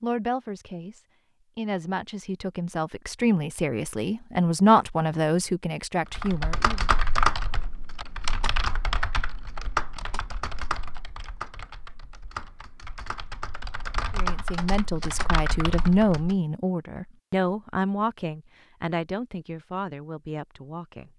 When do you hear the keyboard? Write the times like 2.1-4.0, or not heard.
6.1-16.4.